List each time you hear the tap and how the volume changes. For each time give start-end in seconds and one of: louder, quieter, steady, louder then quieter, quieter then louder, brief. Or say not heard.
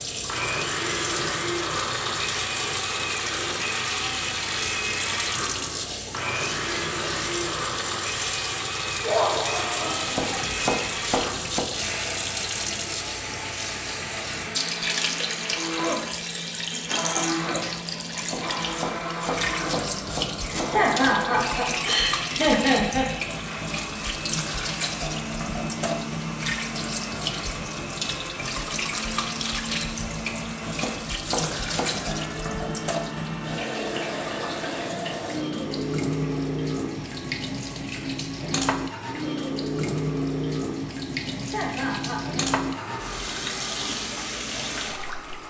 0.0-45.4 steady.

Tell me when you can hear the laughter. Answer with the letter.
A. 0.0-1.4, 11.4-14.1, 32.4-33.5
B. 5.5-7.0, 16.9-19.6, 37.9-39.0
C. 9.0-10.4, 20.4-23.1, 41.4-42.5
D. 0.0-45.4
C.